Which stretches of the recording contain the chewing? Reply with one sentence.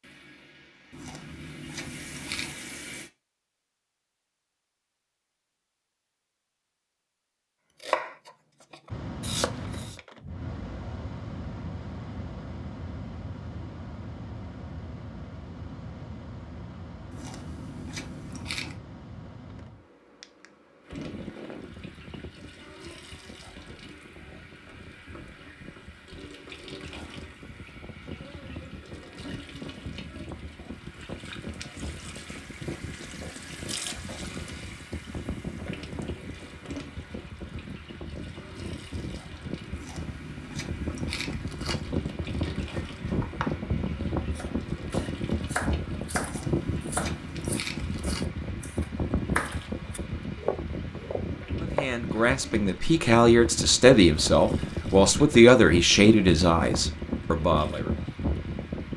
The chewing can be heard from 0.9 to 2.5 s, from 17.1 to 18.8 s, from 39.7 to 42.0 s and from 46.2 to 48.2 s.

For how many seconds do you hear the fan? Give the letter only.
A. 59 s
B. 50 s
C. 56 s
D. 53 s
B.